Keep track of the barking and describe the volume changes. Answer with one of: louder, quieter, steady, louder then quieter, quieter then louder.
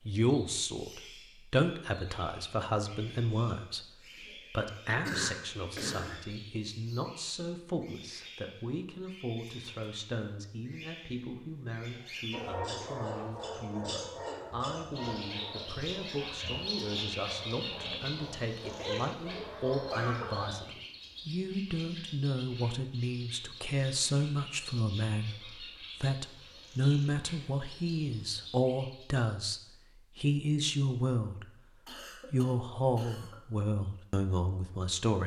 quieter then louder.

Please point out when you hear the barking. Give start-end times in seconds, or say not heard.
12.3-20.7.